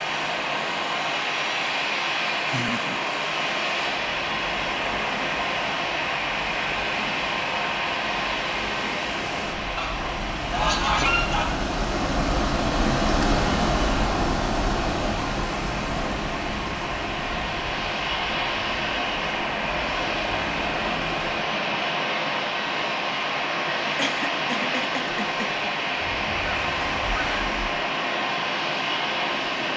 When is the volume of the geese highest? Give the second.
11 s.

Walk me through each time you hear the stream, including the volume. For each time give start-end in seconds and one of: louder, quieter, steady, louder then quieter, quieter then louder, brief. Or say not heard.
0.0-29.7 louder then quieter.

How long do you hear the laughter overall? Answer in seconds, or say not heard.
2 s.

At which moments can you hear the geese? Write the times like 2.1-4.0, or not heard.
9.8-11.4, 26.1-27.6.